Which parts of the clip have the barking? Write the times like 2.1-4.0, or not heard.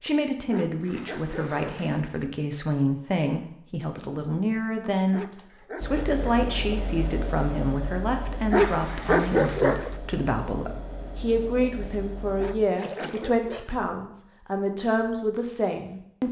0.5-1.9, 5.1-6.5, 8.5-9.9, 12.3-13.8.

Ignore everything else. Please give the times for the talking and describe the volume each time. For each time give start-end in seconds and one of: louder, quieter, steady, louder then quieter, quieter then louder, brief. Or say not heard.
0.0-16.2 steady.